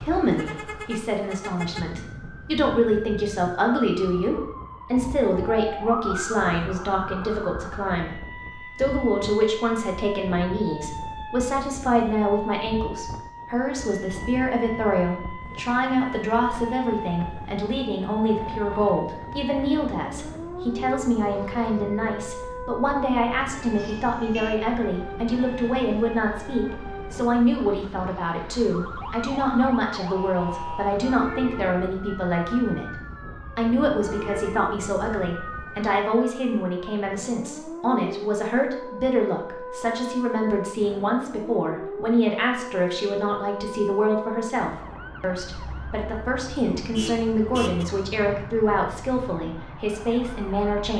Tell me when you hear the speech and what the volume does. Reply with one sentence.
You can hear the speech from 0.0 to 50.9 s, at a steady volume.